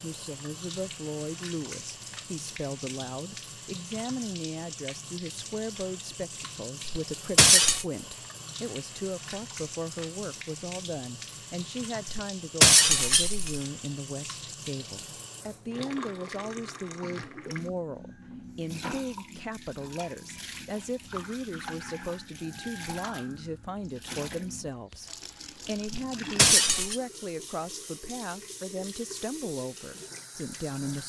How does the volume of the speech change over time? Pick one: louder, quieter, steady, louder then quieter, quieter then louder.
steady.